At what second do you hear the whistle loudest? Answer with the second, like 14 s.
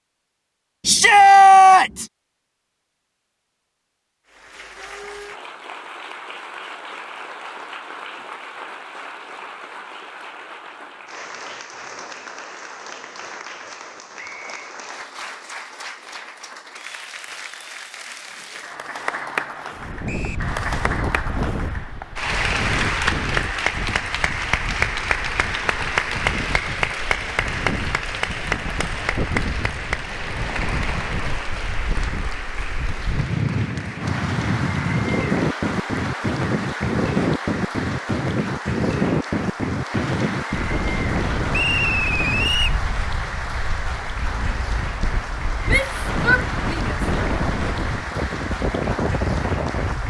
42 s.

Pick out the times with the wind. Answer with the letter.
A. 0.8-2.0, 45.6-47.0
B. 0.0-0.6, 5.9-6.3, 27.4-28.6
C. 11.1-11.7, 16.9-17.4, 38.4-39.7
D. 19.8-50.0
D.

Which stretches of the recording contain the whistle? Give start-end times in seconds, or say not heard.
14.2-14.8, 20.1-20.5, 41.5-42.8.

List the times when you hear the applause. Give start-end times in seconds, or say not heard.
4.2-50.0.